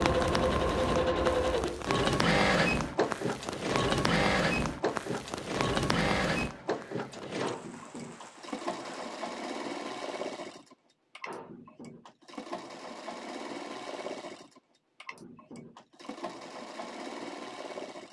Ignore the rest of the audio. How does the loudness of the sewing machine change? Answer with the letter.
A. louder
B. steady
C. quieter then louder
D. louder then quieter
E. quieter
E.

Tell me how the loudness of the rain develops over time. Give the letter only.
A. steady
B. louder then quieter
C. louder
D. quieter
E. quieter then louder
D.